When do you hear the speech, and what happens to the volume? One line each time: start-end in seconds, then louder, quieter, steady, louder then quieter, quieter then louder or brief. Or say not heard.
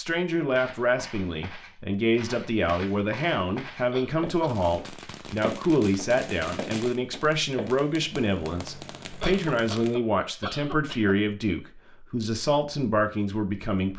0.0-13.9 steady.